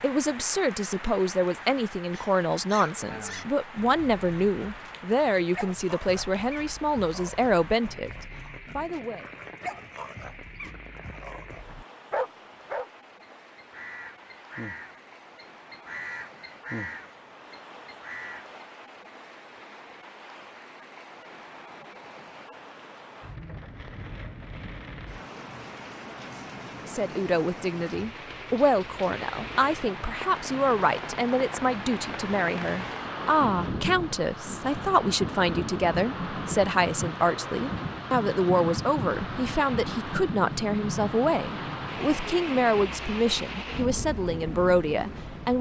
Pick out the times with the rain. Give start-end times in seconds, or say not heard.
0.0-45.5.